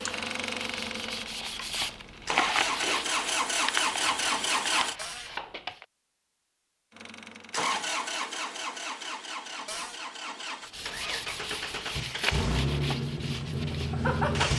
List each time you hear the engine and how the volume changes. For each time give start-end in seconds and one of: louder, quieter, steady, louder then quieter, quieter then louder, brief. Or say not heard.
0.0-5.0 quieter then louder
7.0-14.5 quieter then louder.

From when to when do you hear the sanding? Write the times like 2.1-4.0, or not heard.
0.0-5.8, 10.7-14.3.